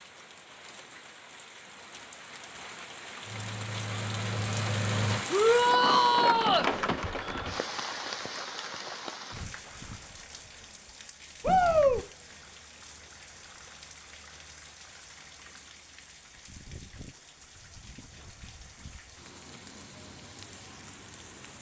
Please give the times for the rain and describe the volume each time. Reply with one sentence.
You can hear the rain from 0.0 to 21.5 s, getting louder then quieter.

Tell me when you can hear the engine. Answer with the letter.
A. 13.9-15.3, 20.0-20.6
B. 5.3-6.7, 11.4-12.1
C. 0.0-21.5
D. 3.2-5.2
D.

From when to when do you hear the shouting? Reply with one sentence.
You can hear the shouting from 5.3 to 6.7 s and from 11.4 to 12.1 s.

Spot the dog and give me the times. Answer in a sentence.
The dog can't be heard in this clip.